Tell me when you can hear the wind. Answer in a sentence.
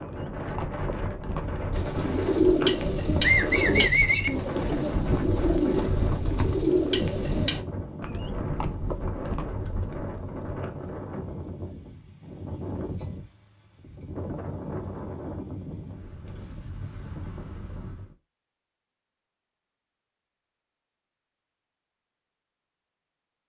The wind can be heard from 0.0 to 18.1 s.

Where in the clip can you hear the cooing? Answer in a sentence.
The cooing can be heard from 1.7 to 7.6 s.